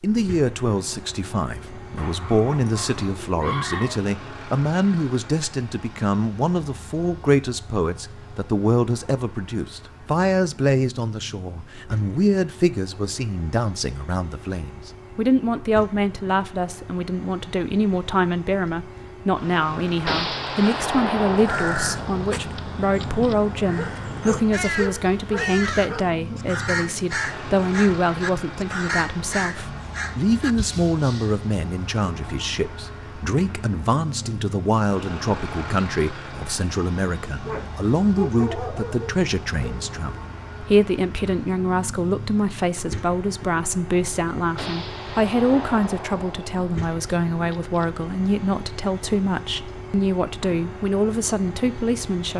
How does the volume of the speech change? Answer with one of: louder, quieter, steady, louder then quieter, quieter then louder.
steady.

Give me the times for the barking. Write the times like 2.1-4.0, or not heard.
1.9-4.0, 23.8-26.1, 37.4-39.8.